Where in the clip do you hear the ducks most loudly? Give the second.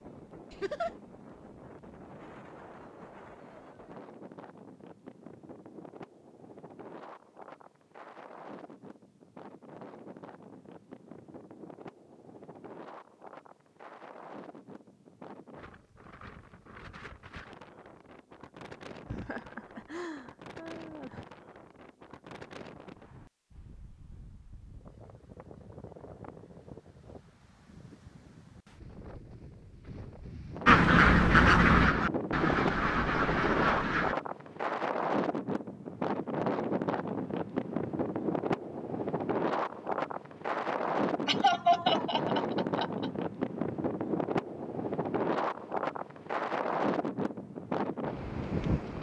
31 s.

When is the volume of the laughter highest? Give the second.
42 s.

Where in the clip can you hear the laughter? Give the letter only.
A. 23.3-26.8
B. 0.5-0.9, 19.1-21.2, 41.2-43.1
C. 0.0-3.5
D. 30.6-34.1
B.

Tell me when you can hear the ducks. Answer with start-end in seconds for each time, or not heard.
30.6-34.1.